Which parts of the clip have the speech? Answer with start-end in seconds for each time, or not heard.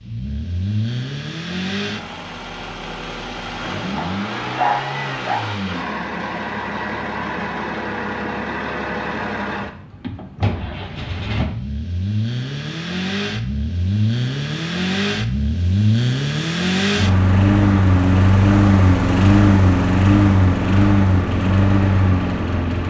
not heard.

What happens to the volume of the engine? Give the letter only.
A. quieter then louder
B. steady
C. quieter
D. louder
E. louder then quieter
D.